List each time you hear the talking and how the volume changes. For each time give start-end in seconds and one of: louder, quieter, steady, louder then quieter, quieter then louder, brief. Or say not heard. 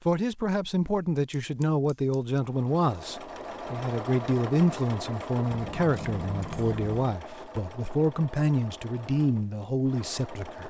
0.1-10.6 steady.